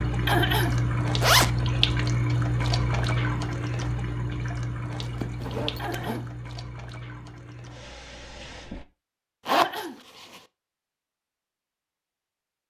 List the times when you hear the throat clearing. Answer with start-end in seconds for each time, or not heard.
0.2-0.8, 5.8-6.3, 9.4-10.0.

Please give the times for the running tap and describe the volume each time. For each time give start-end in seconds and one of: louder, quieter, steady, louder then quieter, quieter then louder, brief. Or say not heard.
0.0-8.8 quieter.